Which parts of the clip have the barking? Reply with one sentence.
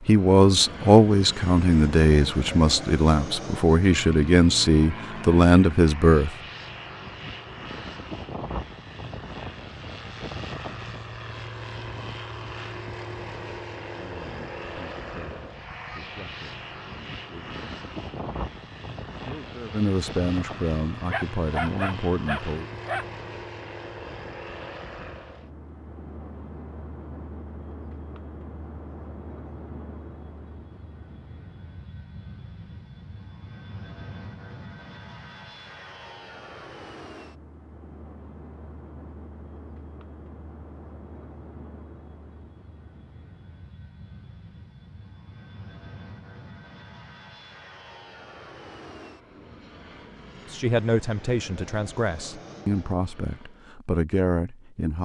The barking can be heard from 21.1 to 23.1 s.